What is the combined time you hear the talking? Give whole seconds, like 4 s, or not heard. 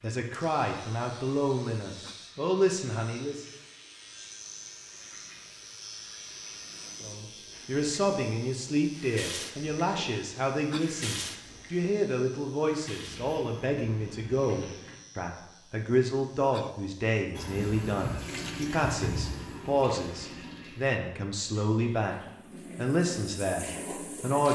20 s.